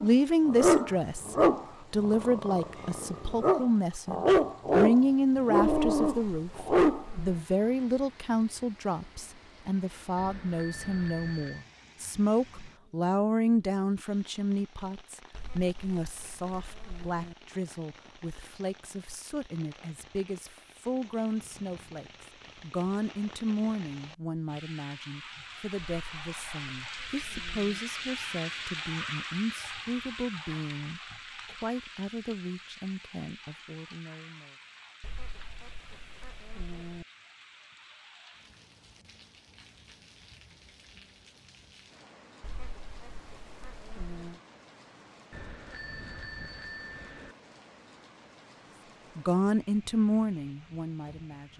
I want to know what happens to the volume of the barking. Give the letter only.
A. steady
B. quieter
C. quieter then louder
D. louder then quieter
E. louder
C.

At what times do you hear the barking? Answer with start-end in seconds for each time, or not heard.
0.0-7.0.